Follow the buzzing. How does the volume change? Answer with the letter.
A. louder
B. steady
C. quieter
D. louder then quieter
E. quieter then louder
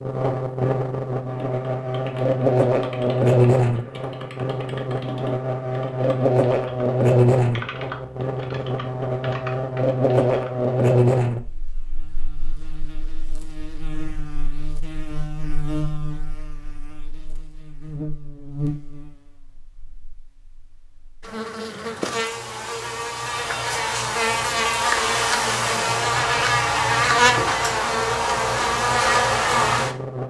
E.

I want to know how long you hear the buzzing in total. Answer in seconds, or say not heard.
30 s.